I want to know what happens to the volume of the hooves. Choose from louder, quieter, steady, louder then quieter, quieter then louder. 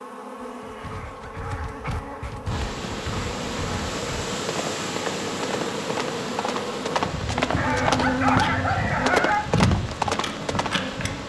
louder.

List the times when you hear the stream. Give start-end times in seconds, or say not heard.
2.5-11.2.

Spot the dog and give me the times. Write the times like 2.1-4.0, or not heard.
0.8-2.3, 7.5-9.4.